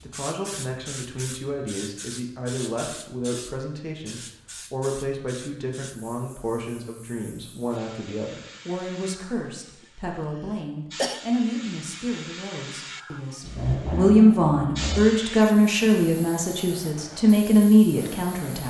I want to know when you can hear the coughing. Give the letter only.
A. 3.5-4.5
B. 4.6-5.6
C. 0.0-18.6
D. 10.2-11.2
D.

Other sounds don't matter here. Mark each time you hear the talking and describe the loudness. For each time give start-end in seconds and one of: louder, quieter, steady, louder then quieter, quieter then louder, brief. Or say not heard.
0.0-18.6 louder.